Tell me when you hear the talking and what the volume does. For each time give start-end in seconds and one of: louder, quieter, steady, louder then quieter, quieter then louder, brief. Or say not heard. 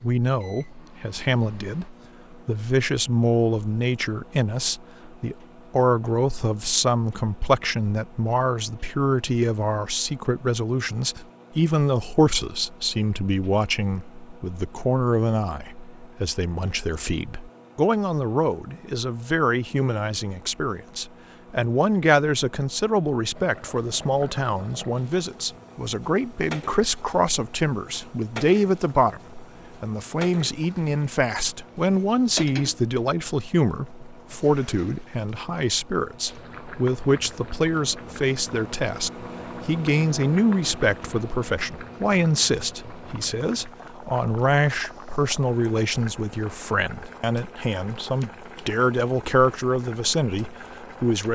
0.0-51.2 steady.